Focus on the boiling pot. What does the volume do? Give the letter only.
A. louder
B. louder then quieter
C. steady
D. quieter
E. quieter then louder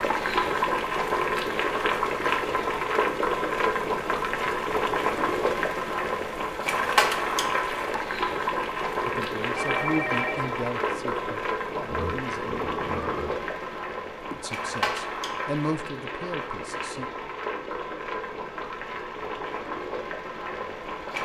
D.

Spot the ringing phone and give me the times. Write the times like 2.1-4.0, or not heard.
9.6-10.6.